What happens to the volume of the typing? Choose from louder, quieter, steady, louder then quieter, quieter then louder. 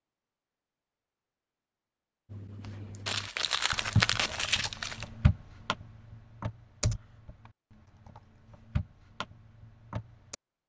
quieter then louder.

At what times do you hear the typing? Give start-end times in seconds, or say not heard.
2.3-10.3.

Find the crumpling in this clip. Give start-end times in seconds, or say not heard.
3.0-5.1.